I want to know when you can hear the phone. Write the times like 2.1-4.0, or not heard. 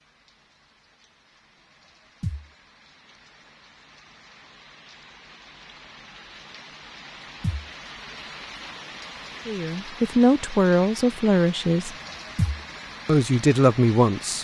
not heard.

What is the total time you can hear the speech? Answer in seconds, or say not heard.
4 s.